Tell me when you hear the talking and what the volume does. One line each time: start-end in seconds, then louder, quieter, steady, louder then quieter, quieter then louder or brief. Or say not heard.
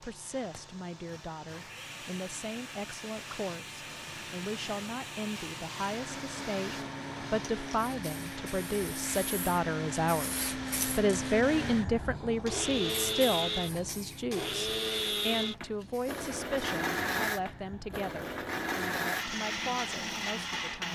0.0-20.8 louder then quieter.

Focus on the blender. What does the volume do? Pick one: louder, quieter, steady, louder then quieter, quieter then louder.
louder.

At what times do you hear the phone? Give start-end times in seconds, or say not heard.
not heard.